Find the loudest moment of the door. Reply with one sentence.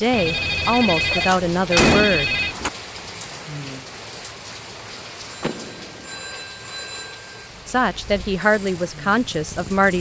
The loudest moment of the door is at 2 seconds.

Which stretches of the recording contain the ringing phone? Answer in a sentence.
You can hear the ringing phone from 0.1 to 2.5 s and from 5.2 to 7.3 s.